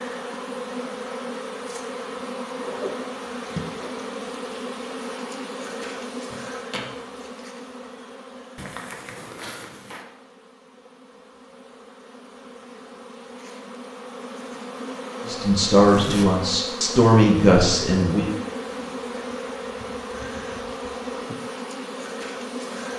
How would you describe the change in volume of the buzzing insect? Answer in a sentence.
The volume of the buzzing insect goes down, then up.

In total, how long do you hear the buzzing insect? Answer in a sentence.
The buzzing insect can be heard for 23 seconds in total.